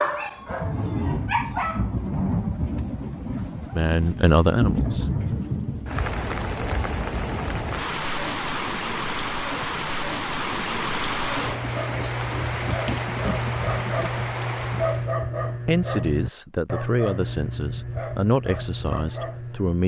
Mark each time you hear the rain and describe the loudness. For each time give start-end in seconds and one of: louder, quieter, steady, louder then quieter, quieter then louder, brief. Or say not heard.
0.0-15.2 steady.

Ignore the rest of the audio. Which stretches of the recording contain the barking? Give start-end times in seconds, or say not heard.
0.0-1.9, 11.3-19.8.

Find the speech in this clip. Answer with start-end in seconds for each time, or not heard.
3.7-5.1, 15.7-19.8.